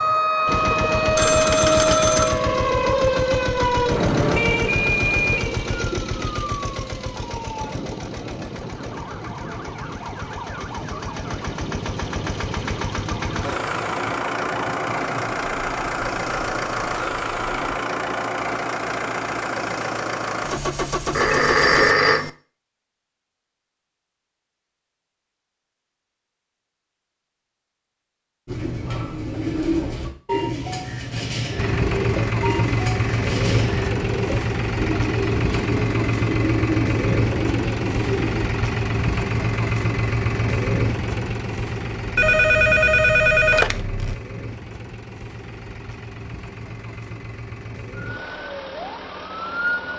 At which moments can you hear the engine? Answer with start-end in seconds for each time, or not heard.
0.0-21.9, 31.6-49.9.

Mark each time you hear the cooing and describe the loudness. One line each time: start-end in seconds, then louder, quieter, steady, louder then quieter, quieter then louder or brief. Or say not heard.
28.4-38.5 steady.